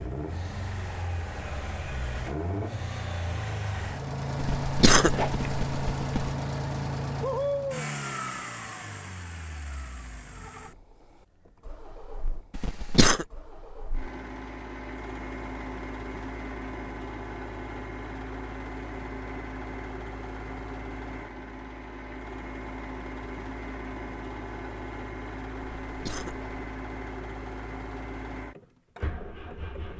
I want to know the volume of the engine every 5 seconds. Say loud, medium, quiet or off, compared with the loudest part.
loud, loud, quiet, medium, medium, medium.